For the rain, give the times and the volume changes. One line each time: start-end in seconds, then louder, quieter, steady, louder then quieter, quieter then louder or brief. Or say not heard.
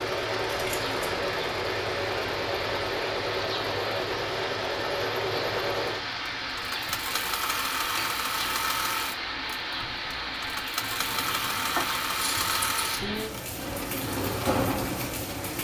0.0-15.5 steady.